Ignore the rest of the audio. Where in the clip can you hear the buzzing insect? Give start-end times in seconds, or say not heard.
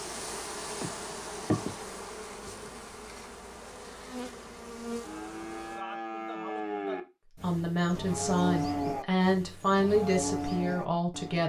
0.0-5.8.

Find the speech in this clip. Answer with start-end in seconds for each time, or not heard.
7.4-11.4.